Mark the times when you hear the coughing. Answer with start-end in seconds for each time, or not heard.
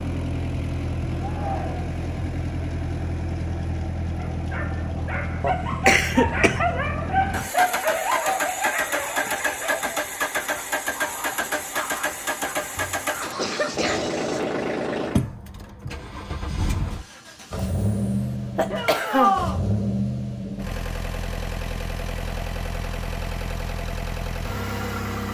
5.4-6.6, 12.8-14.2, 17.6-19.4.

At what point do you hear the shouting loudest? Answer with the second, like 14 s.
19 s.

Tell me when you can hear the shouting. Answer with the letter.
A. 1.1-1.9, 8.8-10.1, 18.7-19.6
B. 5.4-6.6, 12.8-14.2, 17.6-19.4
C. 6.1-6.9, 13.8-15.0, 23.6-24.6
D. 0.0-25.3
A.